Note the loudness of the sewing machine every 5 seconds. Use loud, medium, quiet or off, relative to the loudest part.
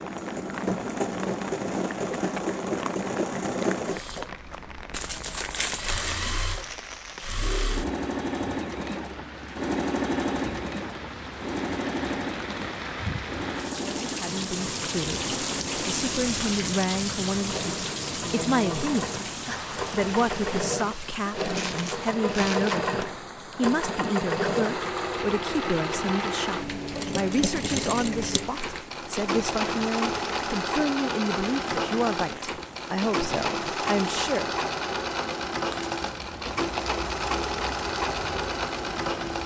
loud, loud, loud, medium, loud, loud, loud, loud.